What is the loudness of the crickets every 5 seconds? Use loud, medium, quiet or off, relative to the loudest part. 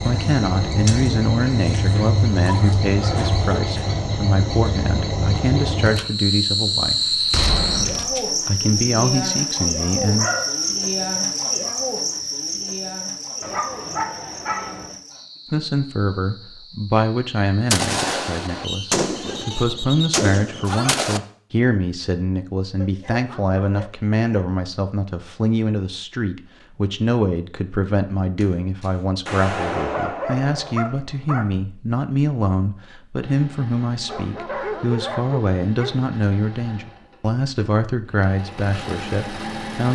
loud, loud, loud, quiet, off, off, off, off.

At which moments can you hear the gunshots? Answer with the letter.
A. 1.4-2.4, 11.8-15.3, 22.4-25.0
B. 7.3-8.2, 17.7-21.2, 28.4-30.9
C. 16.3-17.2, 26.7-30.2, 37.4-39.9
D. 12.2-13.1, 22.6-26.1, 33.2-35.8
B.